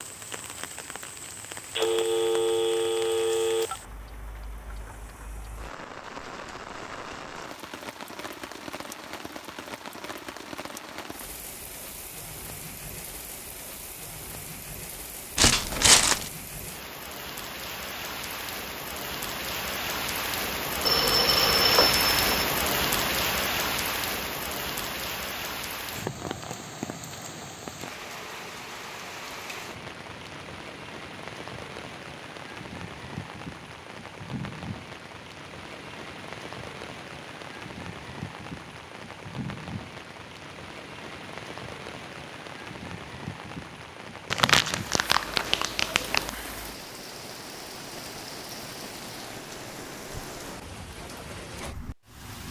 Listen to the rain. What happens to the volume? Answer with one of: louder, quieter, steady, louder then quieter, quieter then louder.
louder then quieter.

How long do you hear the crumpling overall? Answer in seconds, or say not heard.
3 s.